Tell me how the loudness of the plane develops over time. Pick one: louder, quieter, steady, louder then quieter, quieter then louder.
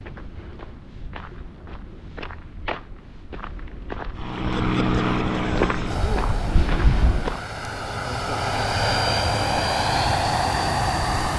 quieter then louder.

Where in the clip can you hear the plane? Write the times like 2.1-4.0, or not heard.
4.2-11.3.